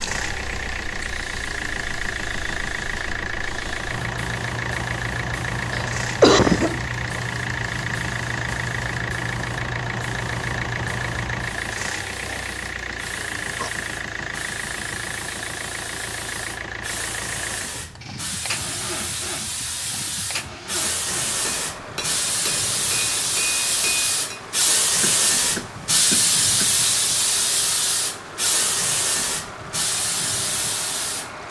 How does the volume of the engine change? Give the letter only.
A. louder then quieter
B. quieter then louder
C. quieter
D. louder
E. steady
C.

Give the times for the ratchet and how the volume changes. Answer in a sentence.
The ratchet can't be heard in this clip.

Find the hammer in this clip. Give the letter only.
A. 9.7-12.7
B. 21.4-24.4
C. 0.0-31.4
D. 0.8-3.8
B.